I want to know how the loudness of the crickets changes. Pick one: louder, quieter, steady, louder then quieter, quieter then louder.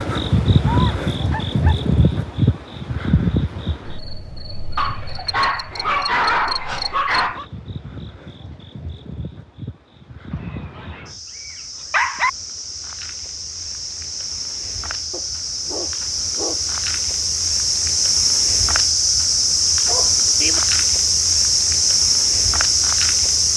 quieter then louder.